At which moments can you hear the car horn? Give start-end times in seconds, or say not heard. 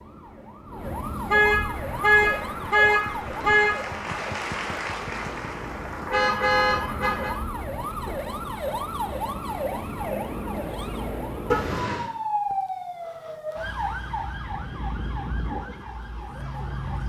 1.2-3.8, 6.1-7.3, 11.5-12.1.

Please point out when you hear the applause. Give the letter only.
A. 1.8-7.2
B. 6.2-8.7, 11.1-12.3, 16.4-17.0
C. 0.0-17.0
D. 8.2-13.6
A.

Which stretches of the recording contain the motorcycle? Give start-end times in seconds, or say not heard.
not heard.